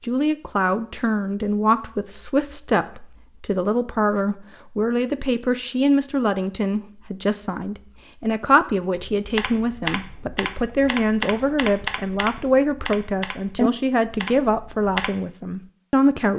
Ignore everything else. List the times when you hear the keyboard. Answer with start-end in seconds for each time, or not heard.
8.9-15.2.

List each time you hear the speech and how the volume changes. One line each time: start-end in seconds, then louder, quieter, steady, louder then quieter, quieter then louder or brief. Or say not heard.
0.0-16.3 steady.